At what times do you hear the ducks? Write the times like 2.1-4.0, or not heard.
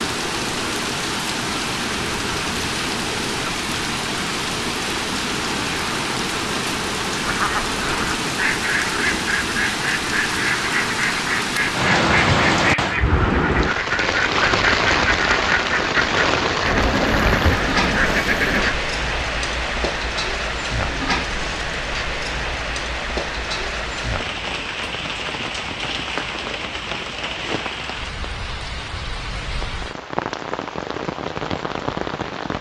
7.2-18.8.